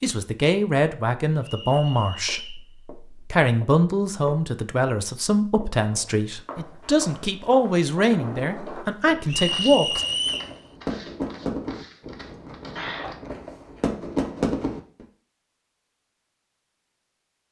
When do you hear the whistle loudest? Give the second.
10 s.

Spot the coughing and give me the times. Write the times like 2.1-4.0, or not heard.
12.8-13.2.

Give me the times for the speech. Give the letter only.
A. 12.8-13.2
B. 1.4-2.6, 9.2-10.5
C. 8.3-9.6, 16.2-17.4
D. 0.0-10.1
D.